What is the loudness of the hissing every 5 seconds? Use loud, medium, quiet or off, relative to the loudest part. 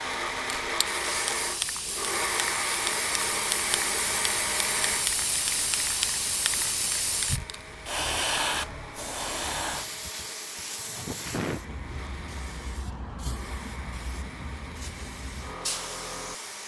loud, loud, medium, medium.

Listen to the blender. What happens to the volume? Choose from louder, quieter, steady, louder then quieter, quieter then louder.
quieter.